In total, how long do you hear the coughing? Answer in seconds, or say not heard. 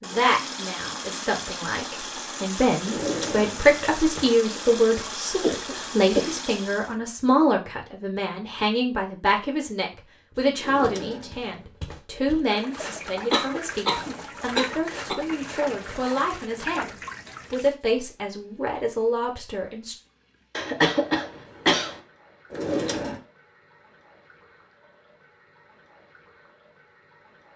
4 s.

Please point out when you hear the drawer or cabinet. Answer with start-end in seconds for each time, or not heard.
2.8-4.3, 10.6-12.0, 22.5-23.2.